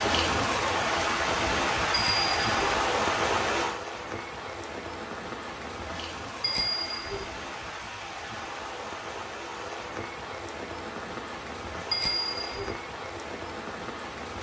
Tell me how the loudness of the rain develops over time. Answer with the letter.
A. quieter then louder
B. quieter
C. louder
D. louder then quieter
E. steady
B.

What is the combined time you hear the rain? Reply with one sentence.
You can hear the rain for 14 seconds altogether.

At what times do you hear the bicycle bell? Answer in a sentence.
The bicycle bell can be heard from 1.9 to 2.8 s, from 6.4 to 7.2 s and from 11.9 to 12.8 s.